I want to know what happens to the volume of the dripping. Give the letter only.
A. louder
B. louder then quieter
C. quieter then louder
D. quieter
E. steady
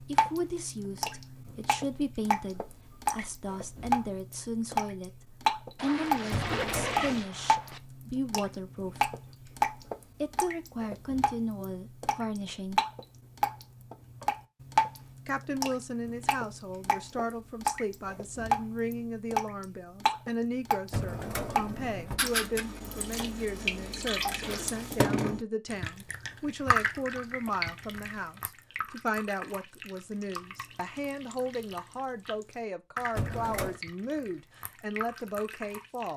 D.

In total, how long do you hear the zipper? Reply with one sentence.
The zipper can be heard for 3 seconds in total.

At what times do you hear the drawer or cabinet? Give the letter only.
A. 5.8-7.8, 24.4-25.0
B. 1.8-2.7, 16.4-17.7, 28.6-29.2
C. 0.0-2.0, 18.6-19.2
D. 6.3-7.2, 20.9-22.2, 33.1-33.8
D.